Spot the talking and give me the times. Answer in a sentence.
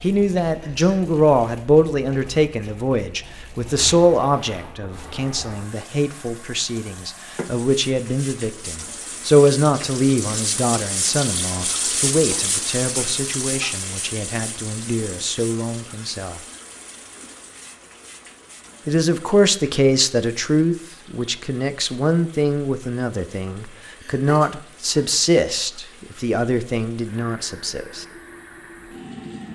The talking can be heard from 0.0 to 16.4 s and from 18.9 to 28.1 s.